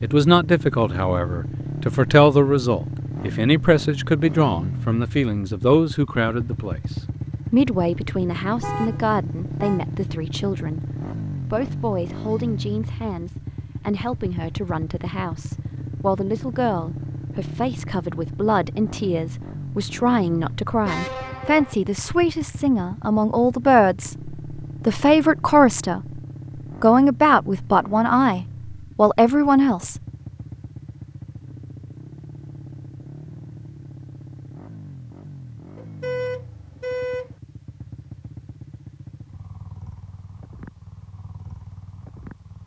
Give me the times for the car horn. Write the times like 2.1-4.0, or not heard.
8.6-9.8, 20.9-21.8, 35.8-37.4.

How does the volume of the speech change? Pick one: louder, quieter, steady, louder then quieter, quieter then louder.
quieter then louder.